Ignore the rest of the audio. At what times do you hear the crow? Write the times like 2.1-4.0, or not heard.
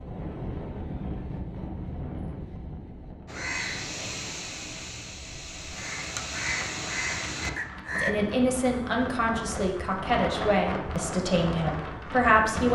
3.2-8.2.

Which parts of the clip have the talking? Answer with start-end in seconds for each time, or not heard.
8.0-12.7.